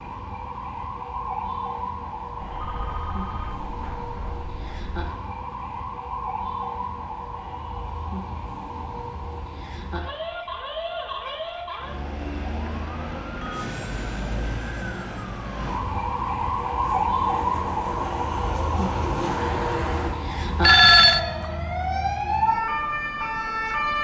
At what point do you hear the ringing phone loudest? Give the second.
21 s.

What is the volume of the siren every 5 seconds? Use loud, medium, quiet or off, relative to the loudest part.
medium, medium, medium, loud, loud.